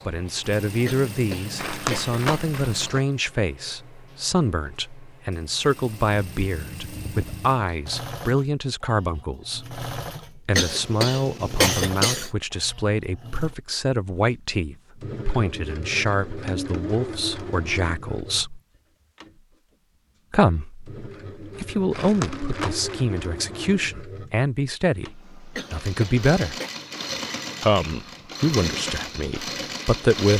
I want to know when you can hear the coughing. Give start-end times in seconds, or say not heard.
0.8-2.2, 10.6-12.3, 25.6-26.8.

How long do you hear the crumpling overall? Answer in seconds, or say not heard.
3 s.